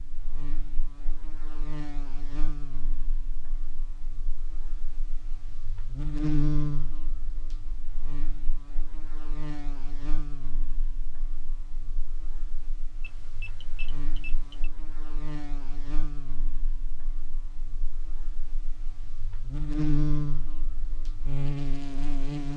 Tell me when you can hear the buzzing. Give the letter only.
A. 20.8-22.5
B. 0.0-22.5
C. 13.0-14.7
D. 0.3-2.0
B.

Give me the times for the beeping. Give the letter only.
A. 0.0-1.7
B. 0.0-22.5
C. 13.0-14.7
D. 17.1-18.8
C.